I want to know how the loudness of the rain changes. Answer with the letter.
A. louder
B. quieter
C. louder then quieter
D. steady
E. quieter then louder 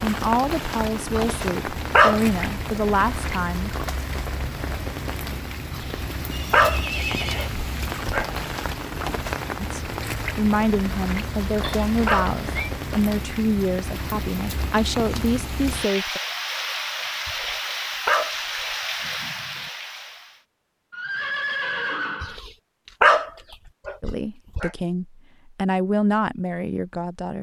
D.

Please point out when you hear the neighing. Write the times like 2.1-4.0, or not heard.
6.3-7.6, 11.6-12.7, 20.9-22.4.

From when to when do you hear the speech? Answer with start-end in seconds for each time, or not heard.
0.0-3.7, 9.6-16.2, 24.0-27.3.